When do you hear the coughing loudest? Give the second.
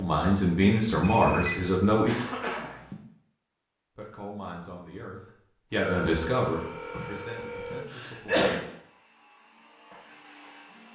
8 s.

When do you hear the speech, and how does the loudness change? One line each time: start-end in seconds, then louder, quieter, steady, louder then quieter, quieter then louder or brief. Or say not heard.
0.0-2.1 brief
4.0-8.6 louder then quieter.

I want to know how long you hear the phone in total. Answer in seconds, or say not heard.
3 s.